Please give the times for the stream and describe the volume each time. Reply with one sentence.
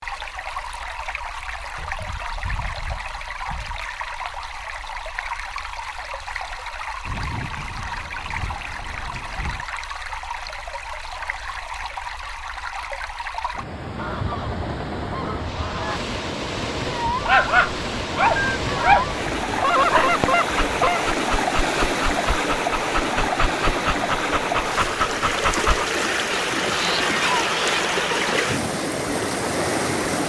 You can hear the stream from 0.0 to 30.2 s, getting louder.